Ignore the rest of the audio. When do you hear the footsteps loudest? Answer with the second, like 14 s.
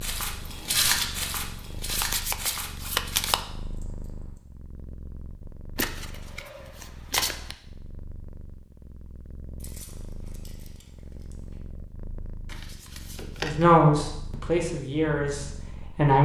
1 s.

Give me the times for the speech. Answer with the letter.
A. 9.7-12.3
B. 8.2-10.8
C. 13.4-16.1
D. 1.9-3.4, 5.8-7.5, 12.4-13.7
C.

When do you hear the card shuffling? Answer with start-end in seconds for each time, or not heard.
1.9-3.4, 5.8-7.5, 12.4-13.7.